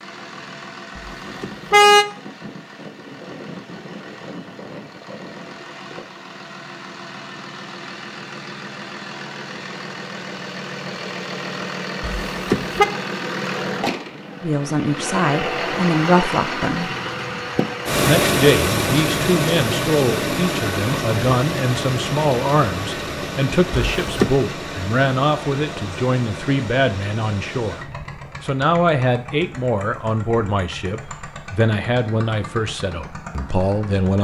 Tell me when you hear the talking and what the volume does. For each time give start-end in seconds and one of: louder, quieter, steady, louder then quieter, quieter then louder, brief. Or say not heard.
14.4-16.9 brief
18.1-34.2 steady.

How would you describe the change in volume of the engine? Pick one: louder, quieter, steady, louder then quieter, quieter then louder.
louder then quieter.